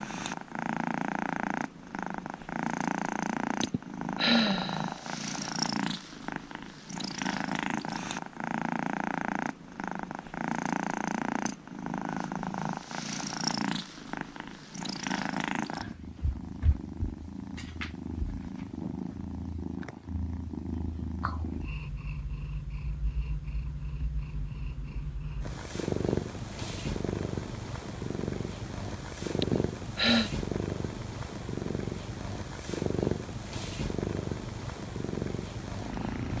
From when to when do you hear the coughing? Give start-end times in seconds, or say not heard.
not heard.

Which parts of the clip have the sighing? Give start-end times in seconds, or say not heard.
3.6-5.5, 29.4-30.3.